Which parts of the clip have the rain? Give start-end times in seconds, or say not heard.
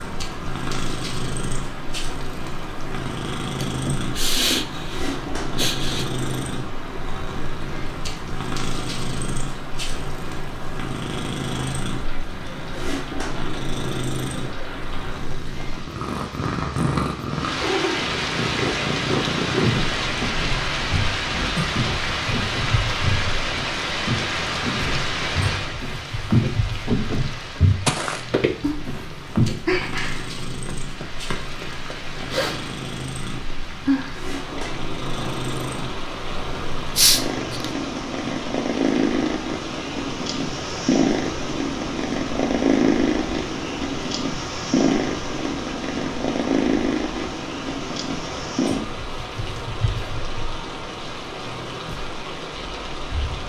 0.0-53.4.